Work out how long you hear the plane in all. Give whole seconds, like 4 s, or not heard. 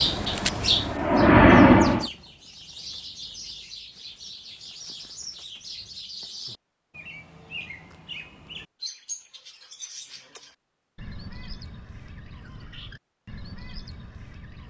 2 s.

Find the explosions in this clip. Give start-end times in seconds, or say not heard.
not heard.